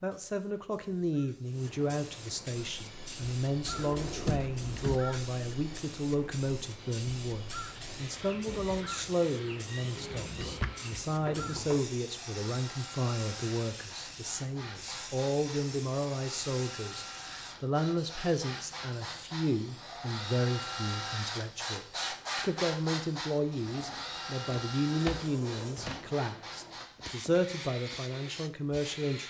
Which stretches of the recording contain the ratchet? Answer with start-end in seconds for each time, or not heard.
not heard.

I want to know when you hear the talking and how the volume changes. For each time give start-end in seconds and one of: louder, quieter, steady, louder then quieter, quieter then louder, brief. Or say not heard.
0.0-29.2 steady.